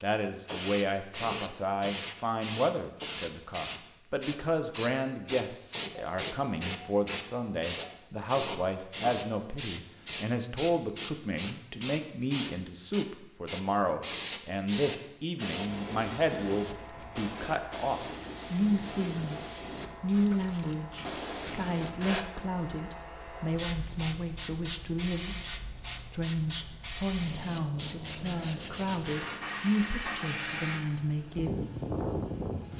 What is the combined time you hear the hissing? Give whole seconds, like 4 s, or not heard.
33 s.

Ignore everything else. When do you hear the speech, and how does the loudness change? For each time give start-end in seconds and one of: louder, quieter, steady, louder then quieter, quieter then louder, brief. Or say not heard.
0.0-31.6 steady.